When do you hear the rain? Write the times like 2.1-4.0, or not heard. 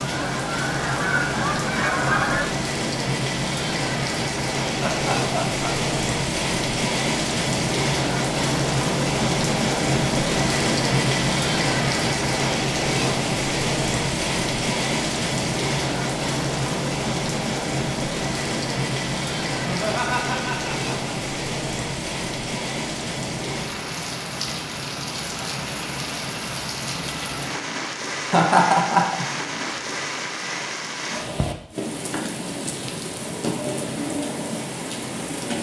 0.0-35.5.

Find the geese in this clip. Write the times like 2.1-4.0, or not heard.
0.0-2.5.